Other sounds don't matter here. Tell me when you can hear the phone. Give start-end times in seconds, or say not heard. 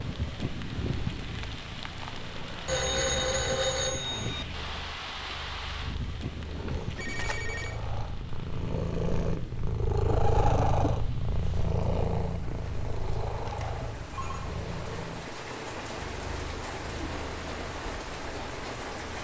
2.6-4.5, 6.7-7.8, 13.4-14.5.